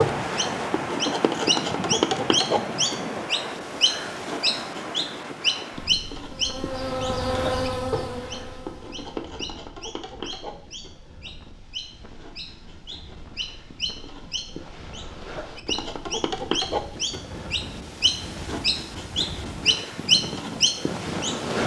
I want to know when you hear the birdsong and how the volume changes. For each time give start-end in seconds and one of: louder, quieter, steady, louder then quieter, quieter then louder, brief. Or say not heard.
0.0-21.6 quieter then louder.